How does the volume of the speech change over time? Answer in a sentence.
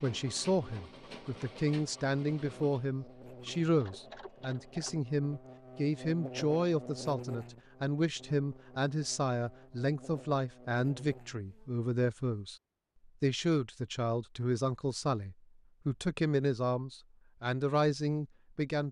The volume of the speech stays about the same.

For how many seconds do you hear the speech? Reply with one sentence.
You can hear the speech for 18 seconds altogether.